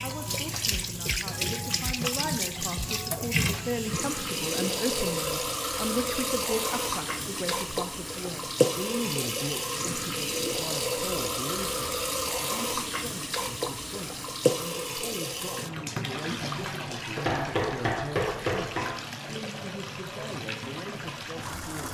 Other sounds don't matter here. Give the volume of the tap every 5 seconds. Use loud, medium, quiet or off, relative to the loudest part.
loud, loud, loud, medium, medium.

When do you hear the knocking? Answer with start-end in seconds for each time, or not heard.
17.2-18.9.